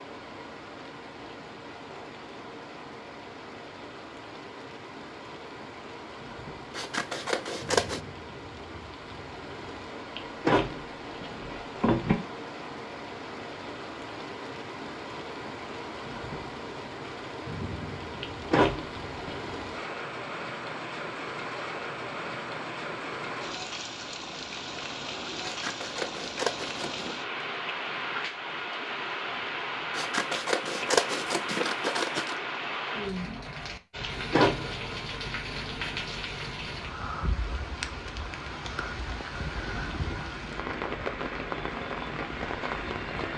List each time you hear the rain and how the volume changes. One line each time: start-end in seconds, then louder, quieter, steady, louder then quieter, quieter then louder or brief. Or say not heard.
0.0-43.3 louder.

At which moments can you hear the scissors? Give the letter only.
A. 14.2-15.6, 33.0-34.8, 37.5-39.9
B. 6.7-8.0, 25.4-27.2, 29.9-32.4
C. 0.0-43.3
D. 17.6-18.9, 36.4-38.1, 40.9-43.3
B.